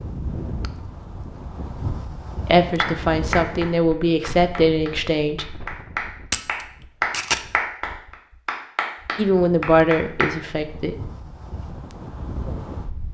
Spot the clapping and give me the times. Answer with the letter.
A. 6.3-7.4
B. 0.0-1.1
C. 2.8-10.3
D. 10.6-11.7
C.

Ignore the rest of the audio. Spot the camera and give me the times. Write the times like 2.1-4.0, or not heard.
6.3-7.4.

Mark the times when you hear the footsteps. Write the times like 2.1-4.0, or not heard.
not heard.